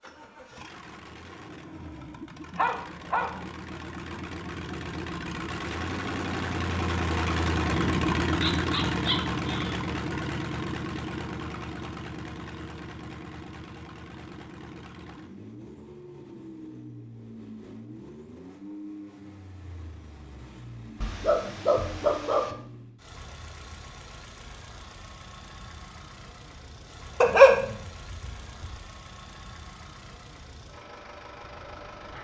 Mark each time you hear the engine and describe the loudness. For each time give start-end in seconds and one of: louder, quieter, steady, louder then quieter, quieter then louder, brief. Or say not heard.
0.0-32.1 louder then quieter.